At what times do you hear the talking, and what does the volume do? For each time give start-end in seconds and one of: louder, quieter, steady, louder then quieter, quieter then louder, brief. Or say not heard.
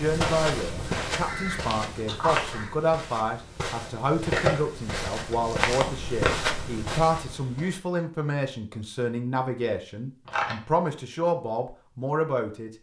0.0-12.7 steady.